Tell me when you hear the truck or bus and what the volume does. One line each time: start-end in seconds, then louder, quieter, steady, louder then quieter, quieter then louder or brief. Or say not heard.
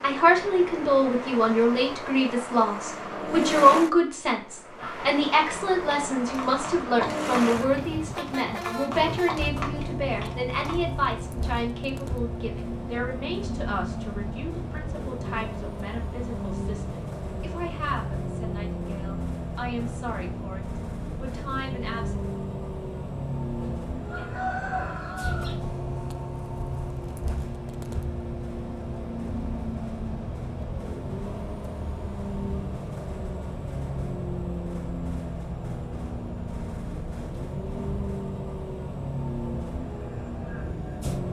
0.0-41.2 steady.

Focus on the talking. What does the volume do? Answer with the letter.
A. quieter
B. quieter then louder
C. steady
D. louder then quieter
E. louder
A.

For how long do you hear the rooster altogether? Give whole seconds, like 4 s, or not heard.
2 s.